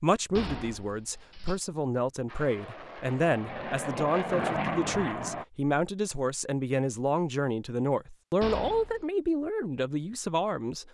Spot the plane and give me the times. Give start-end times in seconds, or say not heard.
2.2-5.5.